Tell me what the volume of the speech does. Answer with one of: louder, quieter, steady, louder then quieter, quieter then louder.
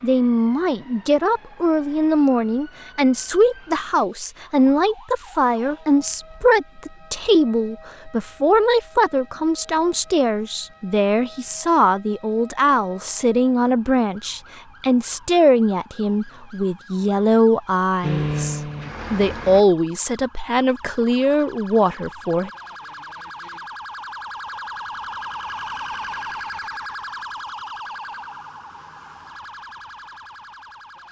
steady.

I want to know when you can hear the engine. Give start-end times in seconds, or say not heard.
18.0-19.6.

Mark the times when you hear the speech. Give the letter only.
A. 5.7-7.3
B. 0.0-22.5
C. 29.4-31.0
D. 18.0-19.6
B.